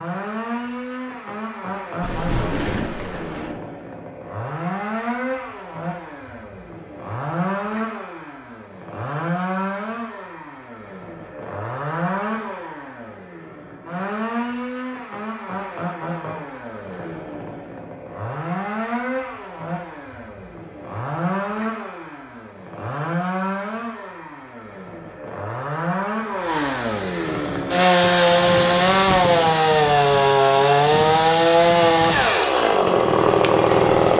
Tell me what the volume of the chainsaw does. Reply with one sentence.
The volume of the chainsaw goes up.